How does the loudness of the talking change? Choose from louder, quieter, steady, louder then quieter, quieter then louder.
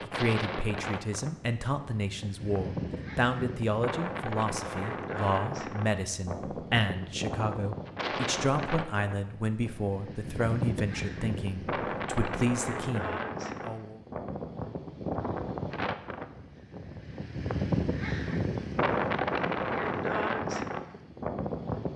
steady.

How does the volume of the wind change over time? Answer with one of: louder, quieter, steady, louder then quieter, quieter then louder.
louder.